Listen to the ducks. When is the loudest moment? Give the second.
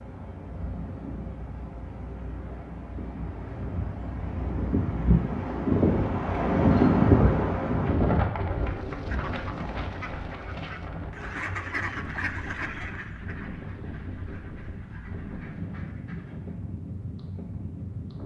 12 s.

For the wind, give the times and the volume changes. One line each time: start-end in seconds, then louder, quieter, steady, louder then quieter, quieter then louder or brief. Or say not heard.
0.0-18.2 louder then quieter.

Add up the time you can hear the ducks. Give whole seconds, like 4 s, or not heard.
8 s.